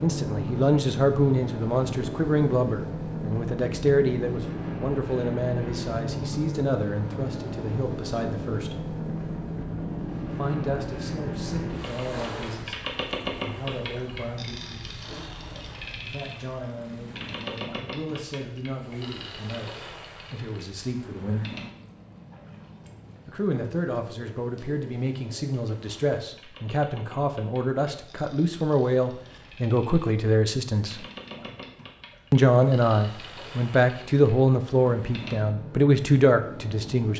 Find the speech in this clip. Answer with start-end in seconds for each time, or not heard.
0.0-8.8, 10.2-15.1, 16.0-21.5, 23.2-31.1, 32.3-37.1.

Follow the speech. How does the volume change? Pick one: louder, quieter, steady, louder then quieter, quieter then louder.
quieter then louder.